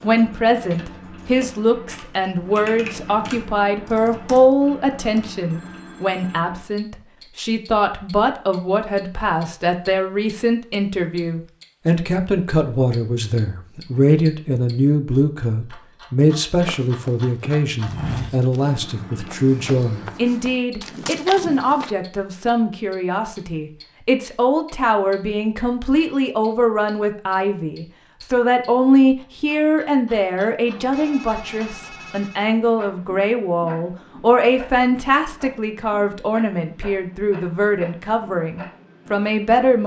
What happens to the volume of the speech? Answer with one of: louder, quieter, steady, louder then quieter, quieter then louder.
steady.